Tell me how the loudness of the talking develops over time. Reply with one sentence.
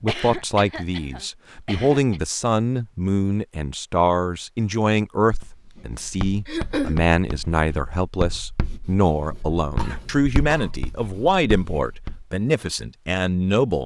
The loudness of the talking stays about the same.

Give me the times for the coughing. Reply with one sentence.
The coughing can be heard from 0.1 to 2.2 s, from 6.5 to 7.0 s and from 9.8 to 10.7 s.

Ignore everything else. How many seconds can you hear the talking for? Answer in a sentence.
You can hear the talking for 14 seconds altogether.